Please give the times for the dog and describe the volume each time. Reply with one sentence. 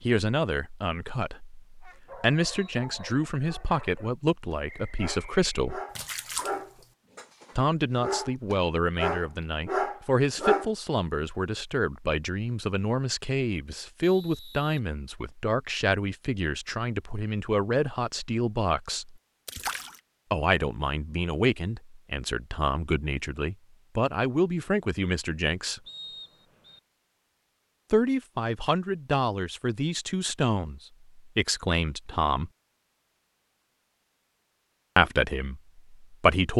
The dog can be heard from 1.8 to 10.7 s, getting louder.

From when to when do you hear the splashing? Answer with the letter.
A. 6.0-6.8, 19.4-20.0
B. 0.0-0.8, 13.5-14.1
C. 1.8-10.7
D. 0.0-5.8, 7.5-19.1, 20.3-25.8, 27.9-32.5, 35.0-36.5
A.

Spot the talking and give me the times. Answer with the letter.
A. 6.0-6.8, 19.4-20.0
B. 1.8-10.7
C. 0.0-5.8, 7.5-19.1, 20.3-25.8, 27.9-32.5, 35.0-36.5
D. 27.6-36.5
C.